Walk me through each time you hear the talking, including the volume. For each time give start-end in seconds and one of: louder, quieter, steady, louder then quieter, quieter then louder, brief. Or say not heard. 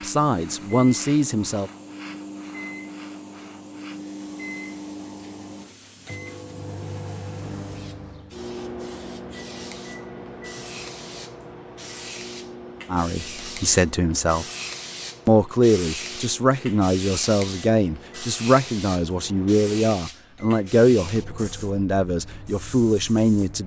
0.0-1.7 brief
12.9-14.4 brief
15.2-23.6 steady.